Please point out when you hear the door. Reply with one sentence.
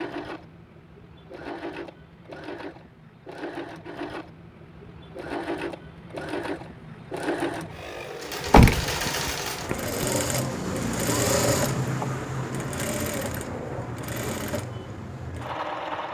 You can hear the door from 8.4 to 10.1 s.